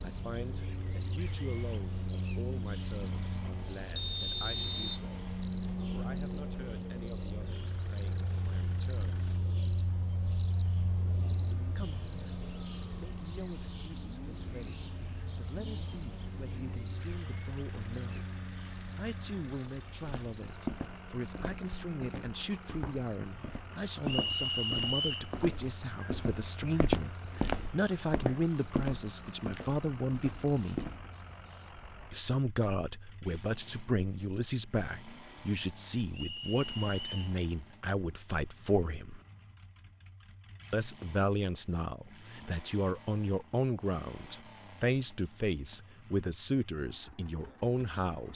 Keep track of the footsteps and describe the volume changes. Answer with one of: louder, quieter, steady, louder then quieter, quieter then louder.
louder then quieter.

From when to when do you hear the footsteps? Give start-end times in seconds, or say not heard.
20.0-31.1.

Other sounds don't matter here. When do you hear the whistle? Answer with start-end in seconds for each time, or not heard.
4.0-5.0, 24.1-25.3, 36.1-37.4.